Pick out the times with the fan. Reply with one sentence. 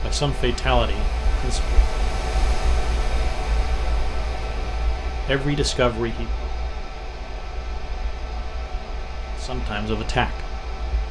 You can hear the fan from 0.0 to 11.0 s.